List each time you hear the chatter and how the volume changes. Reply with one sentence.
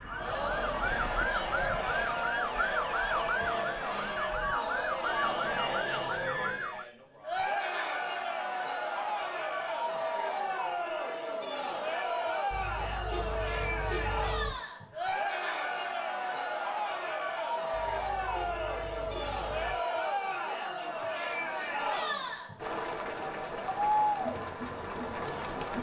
The chatter can be heard from 0.0 to 25.7 s, at a steady volume.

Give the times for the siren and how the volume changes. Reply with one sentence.
The siren can be heard from 0.0 to 6.8 s, at a steady volume.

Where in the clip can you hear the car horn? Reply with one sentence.
You can hear the car horn from 5.0 to 6.6 s, from 12.5 to 14.5 s and from 17.7 to 19.8 s.